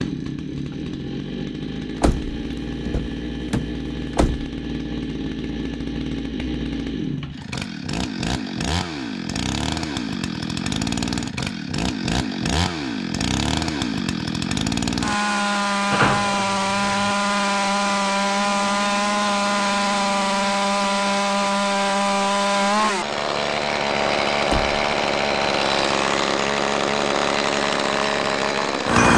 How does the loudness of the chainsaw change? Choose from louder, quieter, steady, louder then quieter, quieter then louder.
louder.